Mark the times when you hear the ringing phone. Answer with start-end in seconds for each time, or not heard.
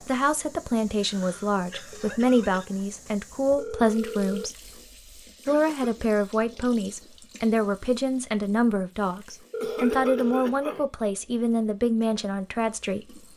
3.5-4.5, 9.5-10.4.